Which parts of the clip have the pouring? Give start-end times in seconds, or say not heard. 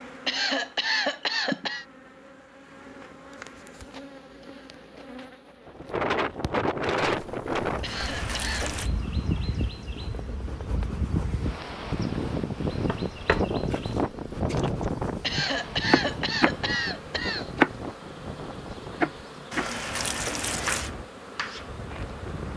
7.8-8.9, 19.5-20.9.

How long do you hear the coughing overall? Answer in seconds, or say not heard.
5 s.